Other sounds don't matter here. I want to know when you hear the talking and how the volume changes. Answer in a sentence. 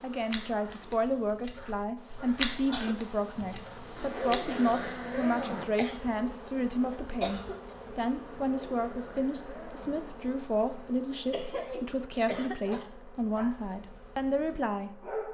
The talking can be heard from 0.0 to 14.9 s, at a steady volume.